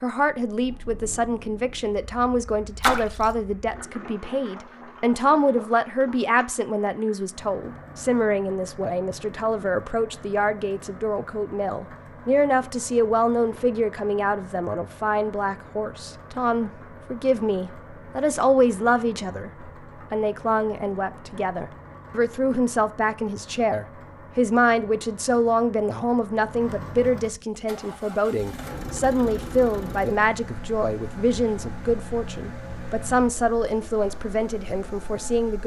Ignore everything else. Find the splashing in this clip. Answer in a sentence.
The splashing can be heard from 2.8 to 3.4 s.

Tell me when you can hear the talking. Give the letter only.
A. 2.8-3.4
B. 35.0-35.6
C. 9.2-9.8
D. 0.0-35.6
D.